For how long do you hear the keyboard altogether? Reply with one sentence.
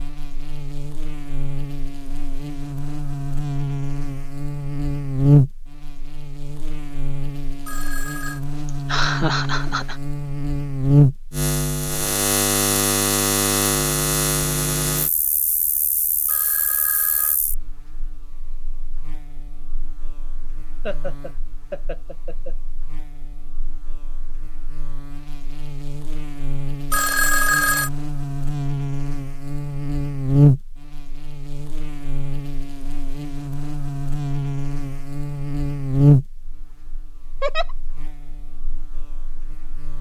The keyboard can't be heard in this clip.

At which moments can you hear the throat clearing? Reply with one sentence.
The throat clearing can't be heard in this clip.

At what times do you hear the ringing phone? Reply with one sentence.
The ringing phone can be heard from 7.7 to 8.4 s, from 16.2 to 17.4 s and from 26.9 to 27.9 s.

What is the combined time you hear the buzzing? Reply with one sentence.
The buzzing can be heard for 40 seconds in total.